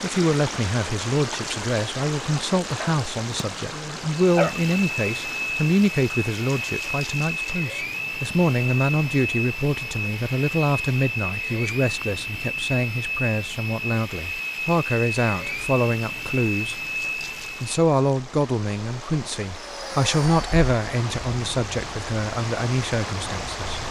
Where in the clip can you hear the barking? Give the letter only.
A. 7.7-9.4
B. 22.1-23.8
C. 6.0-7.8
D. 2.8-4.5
D.